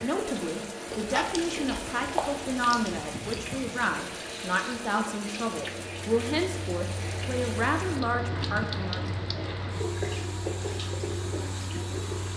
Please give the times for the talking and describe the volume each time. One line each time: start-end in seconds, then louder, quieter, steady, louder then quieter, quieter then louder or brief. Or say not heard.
0.0-9.0 steady.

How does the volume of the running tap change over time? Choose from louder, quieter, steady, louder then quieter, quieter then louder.
steady.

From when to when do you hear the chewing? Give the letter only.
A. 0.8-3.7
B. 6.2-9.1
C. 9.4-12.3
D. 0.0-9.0
A.